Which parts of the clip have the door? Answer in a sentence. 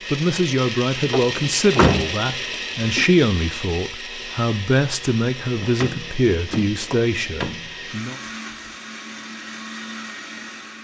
The door can be heard from 1.1 to 3.0 s and from 5.5 to 7.8 s.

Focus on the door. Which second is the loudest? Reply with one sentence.
The volume of the door peaks at 2 seconds.